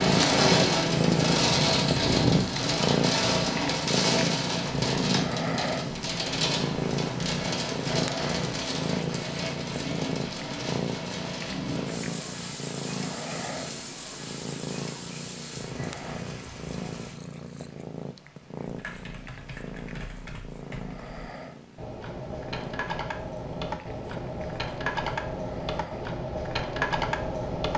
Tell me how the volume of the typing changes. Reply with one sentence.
The volume of the typing goes up.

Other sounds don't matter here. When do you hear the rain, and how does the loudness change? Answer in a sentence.
You can hear the rain from 0.0 to 17.2 s, getting quieter.